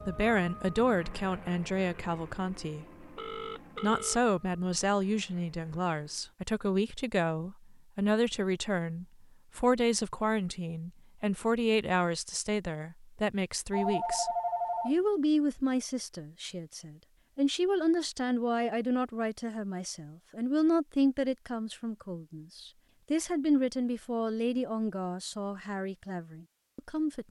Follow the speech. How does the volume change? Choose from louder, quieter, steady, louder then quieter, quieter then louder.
steady.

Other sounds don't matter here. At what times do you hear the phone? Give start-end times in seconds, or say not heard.
3.1-4.2, 13.7-14.9.